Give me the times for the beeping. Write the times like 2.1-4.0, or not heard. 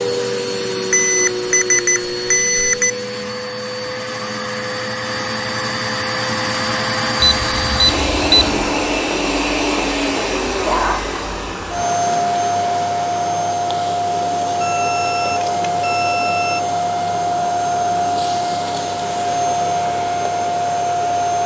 0.9-2.9, 7.2-8.6, 14.6-16.6.